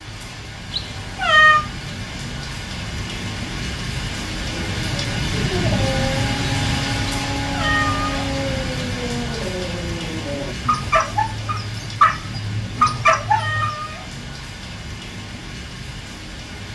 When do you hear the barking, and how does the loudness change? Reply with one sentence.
You can hear the barking from 4.5 to 13.8 s, getting louder.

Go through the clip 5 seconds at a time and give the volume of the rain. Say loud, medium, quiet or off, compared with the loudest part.
medium, loud, medium, medium.